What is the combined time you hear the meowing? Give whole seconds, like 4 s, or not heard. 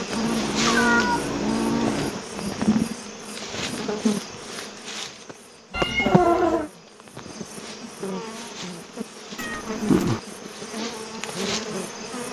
4 s.